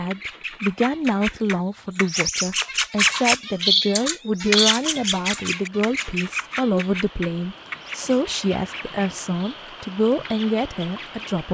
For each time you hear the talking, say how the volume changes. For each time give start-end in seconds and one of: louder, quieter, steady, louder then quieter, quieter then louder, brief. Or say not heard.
0.0-11.4 steady.